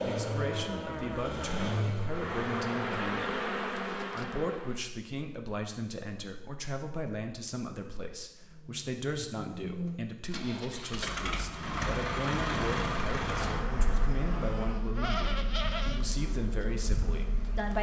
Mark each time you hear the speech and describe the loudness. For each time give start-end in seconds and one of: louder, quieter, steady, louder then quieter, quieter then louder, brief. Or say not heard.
0.0-17.7 steady.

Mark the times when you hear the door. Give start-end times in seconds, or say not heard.
13.2-14.9.